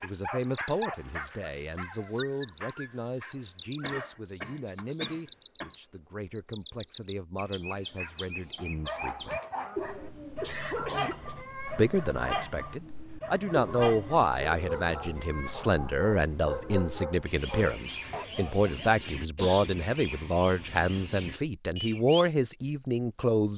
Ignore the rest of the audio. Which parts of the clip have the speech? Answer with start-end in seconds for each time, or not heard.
0.0-9.3, 11.8-23.5.